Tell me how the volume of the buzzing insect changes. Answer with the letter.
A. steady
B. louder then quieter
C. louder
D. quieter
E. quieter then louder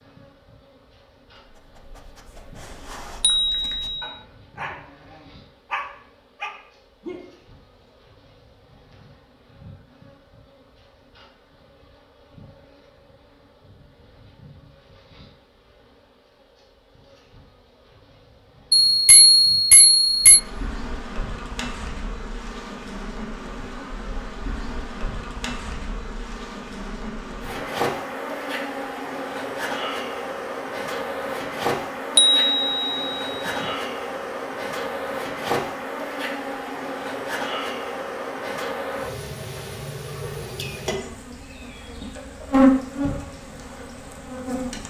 C.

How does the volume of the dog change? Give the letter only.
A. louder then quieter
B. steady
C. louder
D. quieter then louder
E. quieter
C.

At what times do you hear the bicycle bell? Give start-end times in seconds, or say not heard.
3.2-4.0, 18.7-20.4, 32.1-33.6.